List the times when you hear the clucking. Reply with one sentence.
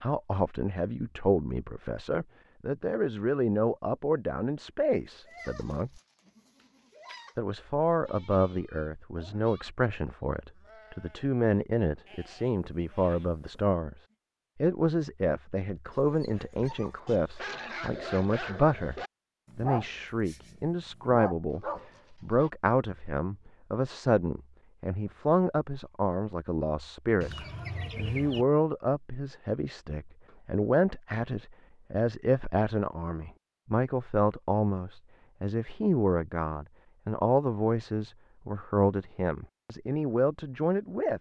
You can hear the clucking from 27.2 to 28.4 s.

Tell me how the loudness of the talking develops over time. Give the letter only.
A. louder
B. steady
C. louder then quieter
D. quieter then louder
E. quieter
B.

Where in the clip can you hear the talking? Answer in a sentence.
You can hear the talking from 0.0 to 5.9 s, from 7.3 to 13.9 s, from 14.6 to 27.3 s and from 27.9 to 41.1 s.